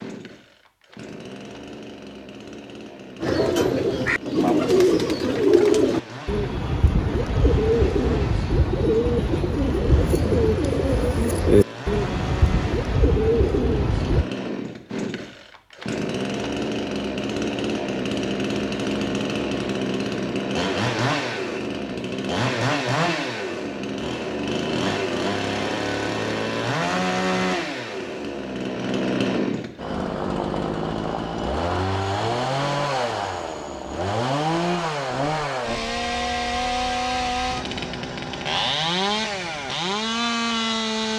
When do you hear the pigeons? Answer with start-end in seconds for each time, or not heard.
3.2-14.3.